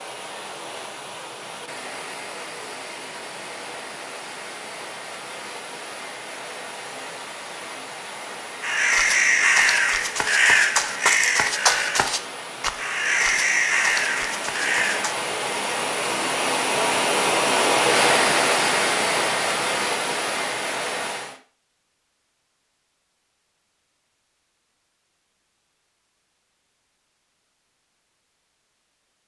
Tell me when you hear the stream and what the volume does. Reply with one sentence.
You can hear the stream from 0.0 to 21.4 s, getting louder.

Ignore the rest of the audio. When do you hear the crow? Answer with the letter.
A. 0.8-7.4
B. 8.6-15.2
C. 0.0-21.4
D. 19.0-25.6
B.